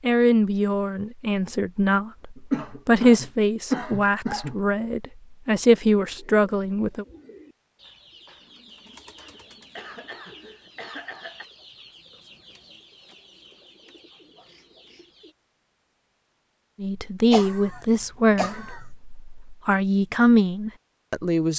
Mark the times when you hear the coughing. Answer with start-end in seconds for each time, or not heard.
2.4-4.5, 9.8-11.4, 17.3-18.9.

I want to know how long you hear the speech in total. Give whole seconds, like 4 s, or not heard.
12 s.